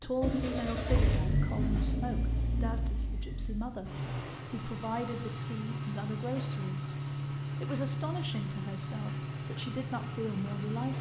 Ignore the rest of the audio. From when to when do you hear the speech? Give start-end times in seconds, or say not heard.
0.0-3.9, 4.5-7.0, 7.6-10.9.